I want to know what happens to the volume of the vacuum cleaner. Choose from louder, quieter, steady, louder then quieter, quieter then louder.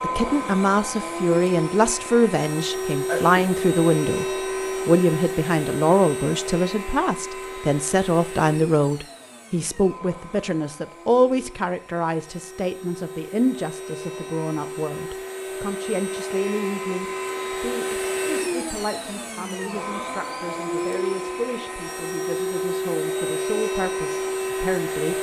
quieter then louder.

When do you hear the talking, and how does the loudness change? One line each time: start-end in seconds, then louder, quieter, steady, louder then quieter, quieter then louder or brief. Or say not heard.
0.0-25.1 quieter.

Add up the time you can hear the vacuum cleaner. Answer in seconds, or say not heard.
25 s.